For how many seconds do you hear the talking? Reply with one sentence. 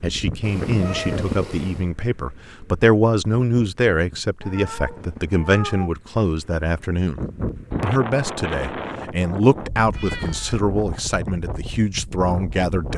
The talking can be heard for 12 seconds in total.